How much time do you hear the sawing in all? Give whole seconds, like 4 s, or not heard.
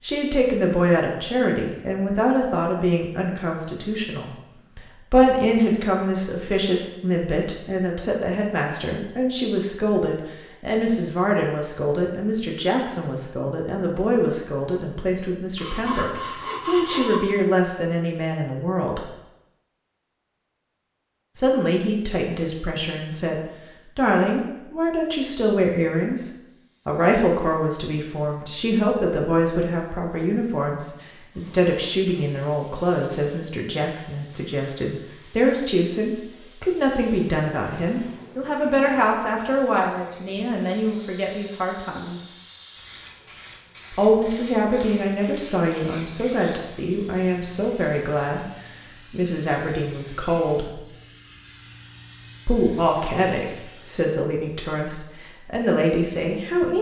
2 s.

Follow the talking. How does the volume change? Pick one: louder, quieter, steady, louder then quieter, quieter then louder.
steady.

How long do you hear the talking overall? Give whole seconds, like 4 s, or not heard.
51 s.